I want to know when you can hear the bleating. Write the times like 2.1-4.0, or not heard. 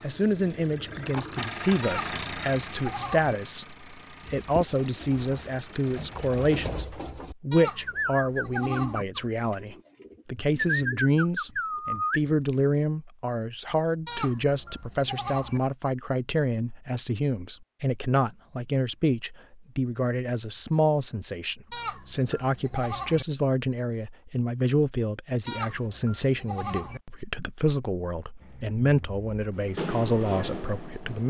1.8-3.4, 7.5-9.1, 14.1-15.6, 21.7-23.2, 25.4-27.0.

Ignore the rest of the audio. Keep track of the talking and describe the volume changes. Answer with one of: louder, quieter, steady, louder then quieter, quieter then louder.
steady.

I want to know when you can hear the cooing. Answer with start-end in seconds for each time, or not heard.
4.2-12.3.